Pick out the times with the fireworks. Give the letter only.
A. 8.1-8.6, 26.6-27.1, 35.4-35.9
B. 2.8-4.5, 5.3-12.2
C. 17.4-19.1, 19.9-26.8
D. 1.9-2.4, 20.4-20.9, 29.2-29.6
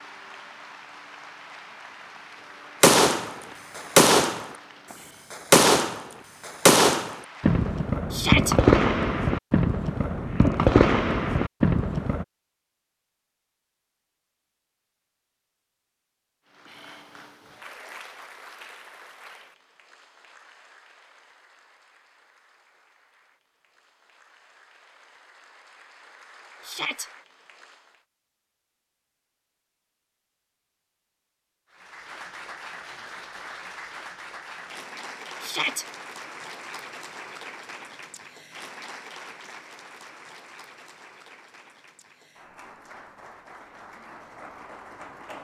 B.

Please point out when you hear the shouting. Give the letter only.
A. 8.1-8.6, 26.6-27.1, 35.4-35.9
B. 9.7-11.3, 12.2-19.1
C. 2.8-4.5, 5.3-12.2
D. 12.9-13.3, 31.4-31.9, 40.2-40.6
A.